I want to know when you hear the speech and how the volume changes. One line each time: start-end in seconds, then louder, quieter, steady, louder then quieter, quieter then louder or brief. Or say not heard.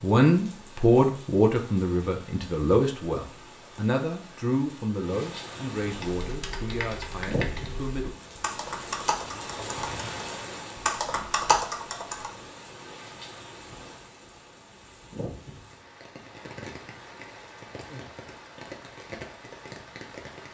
0.0-8.3 quieter.